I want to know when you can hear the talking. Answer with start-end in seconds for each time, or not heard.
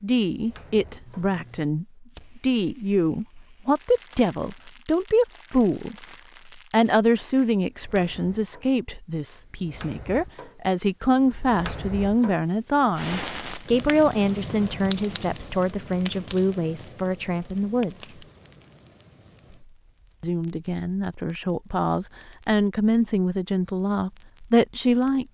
0.0-6.0, 6.7-18.1, 20.2-25.2.